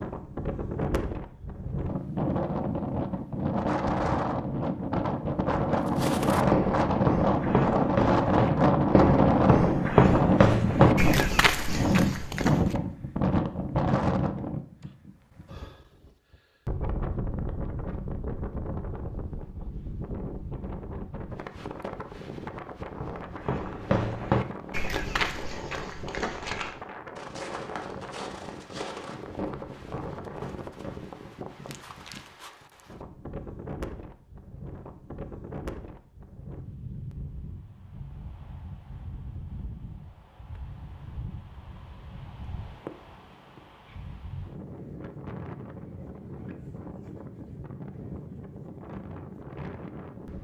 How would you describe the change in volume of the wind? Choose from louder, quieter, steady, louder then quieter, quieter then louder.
quieter.